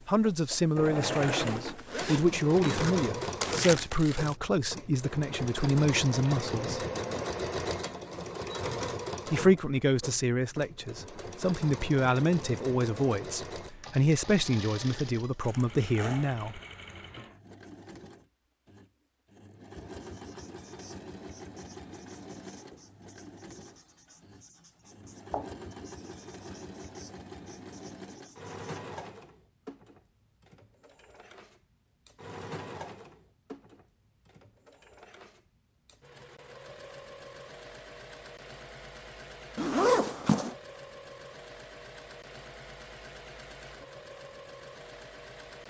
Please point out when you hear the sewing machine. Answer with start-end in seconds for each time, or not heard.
0.0-45.6.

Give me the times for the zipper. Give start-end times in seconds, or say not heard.
1.4-3.0, 15.4-16.3, 39.5-40.5.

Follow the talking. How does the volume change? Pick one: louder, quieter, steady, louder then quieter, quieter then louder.
steady.